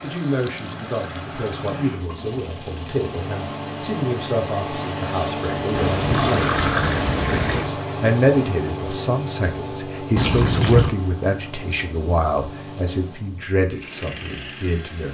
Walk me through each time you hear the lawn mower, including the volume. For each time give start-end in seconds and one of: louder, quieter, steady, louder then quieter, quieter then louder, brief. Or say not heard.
0.0-15.0 louder then quieter.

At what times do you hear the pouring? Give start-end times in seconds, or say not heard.
0.1-1.8, 5.8-7.7, 10.2-10.9.